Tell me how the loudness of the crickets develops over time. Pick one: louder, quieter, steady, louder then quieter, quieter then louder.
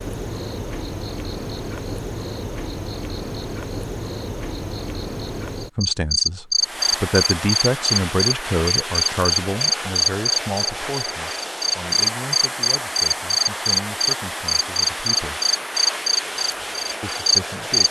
louder.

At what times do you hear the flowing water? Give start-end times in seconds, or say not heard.
6.5-17.8.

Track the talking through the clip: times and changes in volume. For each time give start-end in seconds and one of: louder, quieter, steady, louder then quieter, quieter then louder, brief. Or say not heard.
5.8-15.4 quieter
17.0-17.8 brief.